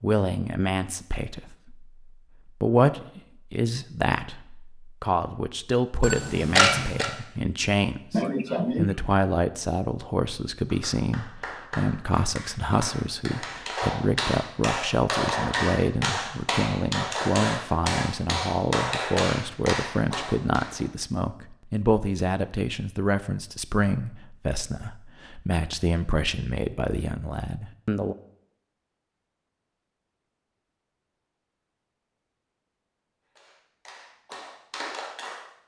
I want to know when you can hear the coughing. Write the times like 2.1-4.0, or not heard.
8.1-9.0.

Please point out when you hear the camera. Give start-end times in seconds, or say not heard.
6.0-7.1.